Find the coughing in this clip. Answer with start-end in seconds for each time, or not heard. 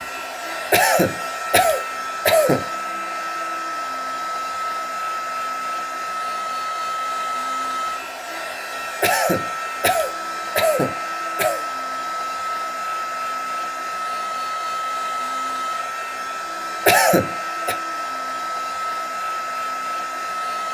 0.7-2.6, 9.0-11.6, 16.9-17.8.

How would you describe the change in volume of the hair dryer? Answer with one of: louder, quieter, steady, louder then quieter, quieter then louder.
steady.